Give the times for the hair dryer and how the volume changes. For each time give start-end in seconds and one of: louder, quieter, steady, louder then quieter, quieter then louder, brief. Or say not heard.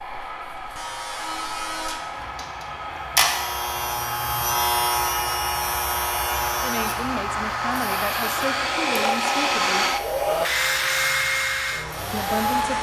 0.0-12.7 louder.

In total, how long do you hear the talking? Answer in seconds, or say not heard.
4 s.